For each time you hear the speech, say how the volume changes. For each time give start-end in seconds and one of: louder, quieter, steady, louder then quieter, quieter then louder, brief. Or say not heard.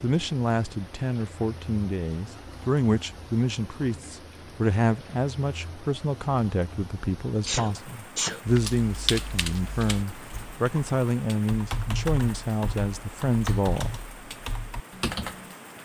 0.0-14.0 steady.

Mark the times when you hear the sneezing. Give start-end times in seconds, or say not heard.
7.5-8.4.